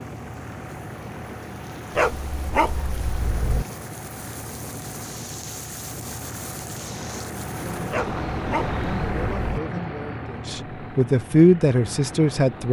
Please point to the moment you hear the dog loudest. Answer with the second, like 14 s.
2 s.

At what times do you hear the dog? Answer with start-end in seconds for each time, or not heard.
1.9-3.6, 7.9-9.6.